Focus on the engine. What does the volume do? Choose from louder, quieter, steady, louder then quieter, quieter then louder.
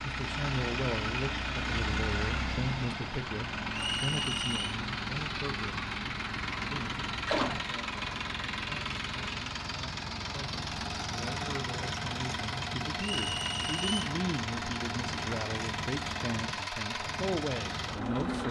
steady.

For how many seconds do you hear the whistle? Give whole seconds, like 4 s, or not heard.
2 s.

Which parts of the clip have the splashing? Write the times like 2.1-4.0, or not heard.
7.2-7.7.